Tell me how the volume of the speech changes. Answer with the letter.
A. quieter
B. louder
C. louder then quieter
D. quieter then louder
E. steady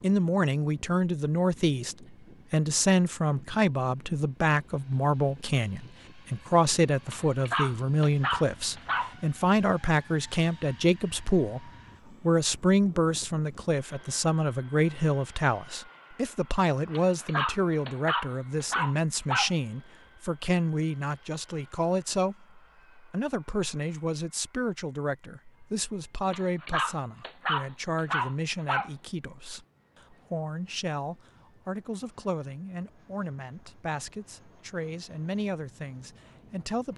A.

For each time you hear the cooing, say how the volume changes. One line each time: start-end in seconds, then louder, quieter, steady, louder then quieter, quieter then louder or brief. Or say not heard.
not heard.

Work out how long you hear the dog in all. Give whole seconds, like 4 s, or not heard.
7 s.